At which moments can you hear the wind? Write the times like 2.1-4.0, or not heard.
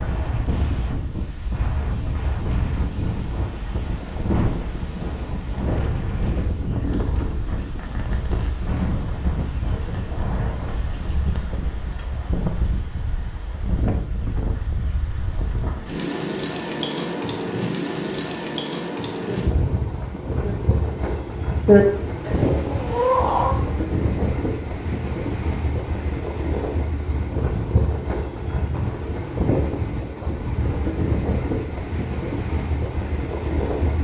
0.0-33.9.